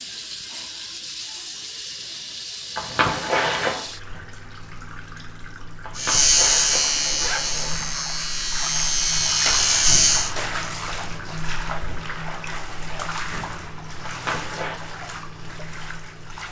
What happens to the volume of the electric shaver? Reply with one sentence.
The volume of the electric shaver goes down, then up.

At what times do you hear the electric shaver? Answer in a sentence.
You can hear the electric shaver from 6.0 to 10.3 s.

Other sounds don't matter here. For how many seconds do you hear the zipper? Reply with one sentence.
The zipper can be heard for 4 seconds in total.